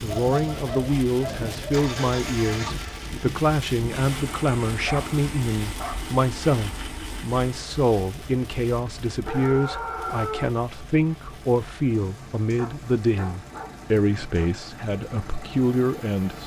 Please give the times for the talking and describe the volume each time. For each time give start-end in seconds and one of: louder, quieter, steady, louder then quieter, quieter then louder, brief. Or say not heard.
0.0-16.4 steady.